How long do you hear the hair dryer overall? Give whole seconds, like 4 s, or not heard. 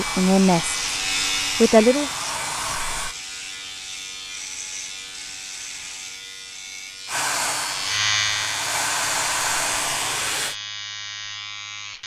7 s.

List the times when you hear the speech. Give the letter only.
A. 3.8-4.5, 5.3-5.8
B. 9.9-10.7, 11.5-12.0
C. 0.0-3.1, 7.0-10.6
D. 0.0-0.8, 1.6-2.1
D.